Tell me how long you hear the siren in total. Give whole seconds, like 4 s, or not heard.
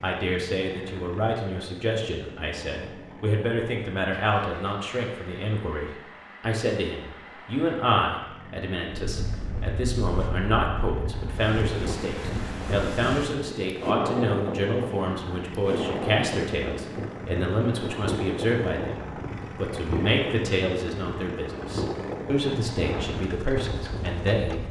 not heard.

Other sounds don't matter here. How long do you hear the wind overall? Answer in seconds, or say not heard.
16 s.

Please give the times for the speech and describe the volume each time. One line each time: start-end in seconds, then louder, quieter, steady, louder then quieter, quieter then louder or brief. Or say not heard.
0.0-24.6 steady.